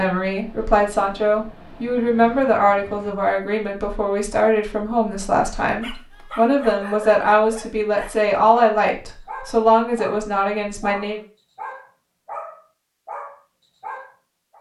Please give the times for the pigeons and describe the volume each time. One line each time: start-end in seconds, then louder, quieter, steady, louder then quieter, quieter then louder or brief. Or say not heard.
not heard.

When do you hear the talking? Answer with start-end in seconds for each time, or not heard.
0.0-11.2.